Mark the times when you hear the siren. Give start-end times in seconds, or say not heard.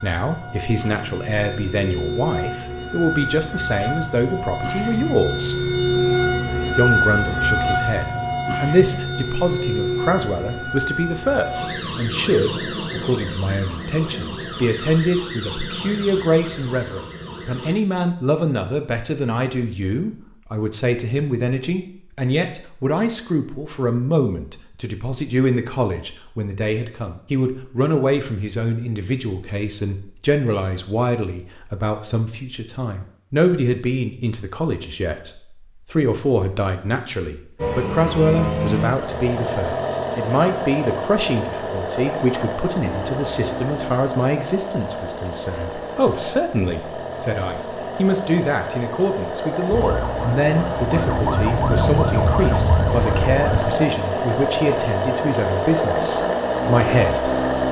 0.0-17.8, 49.7-53.6.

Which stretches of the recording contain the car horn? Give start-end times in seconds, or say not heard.
not heard.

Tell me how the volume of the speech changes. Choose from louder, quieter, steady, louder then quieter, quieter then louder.
steady.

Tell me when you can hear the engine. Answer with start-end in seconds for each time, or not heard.
37.5-57.6.